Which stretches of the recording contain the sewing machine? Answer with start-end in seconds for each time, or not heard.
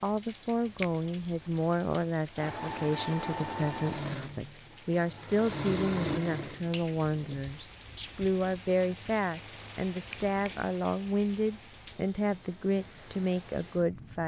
2.4-6.7.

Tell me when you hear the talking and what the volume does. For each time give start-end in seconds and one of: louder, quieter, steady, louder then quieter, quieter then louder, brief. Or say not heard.
0.0-14.2 steady.